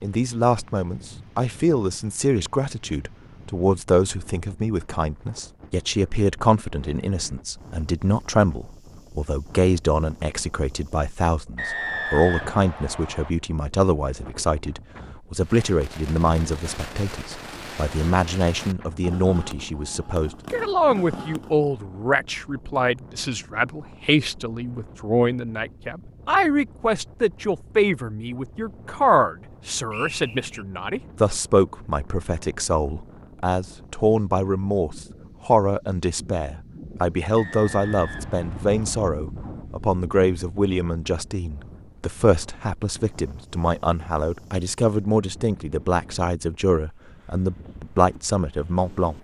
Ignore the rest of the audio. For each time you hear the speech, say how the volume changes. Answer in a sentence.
You can hear the speech from 0.0 to 49.1 s, at a steady volume.